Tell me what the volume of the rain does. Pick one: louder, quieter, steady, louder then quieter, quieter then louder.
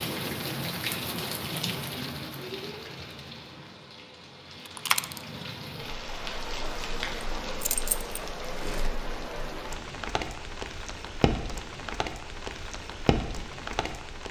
quieter then louder.